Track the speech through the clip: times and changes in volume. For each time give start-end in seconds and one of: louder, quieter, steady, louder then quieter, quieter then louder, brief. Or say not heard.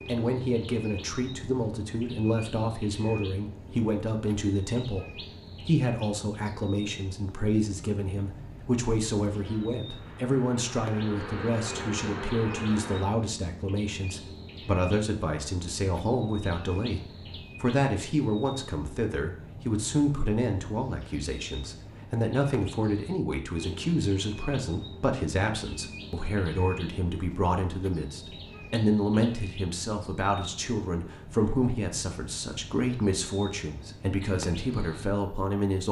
0.1-35.8 steady.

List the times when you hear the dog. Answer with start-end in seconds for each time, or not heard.
not heard.